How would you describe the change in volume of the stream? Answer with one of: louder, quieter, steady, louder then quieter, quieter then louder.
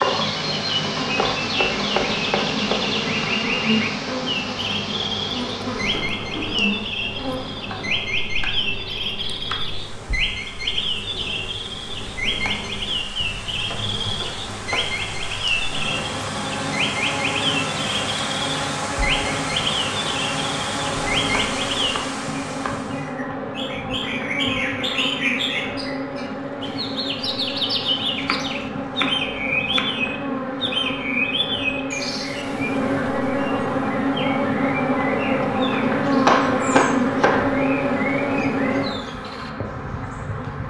quieter then louder.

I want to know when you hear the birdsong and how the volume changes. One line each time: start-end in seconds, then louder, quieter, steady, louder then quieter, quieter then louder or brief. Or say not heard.
0.0-40.6 quieter.